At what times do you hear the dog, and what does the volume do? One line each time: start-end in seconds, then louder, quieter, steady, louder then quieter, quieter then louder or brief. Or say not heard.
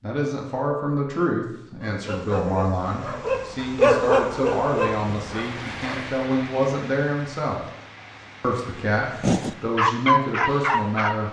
1.8-6.1 louder then quieter
9.2-11.2 brief.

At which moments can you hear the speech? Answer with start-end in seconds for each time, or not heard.
0.0-7.7, 8.4-11.2.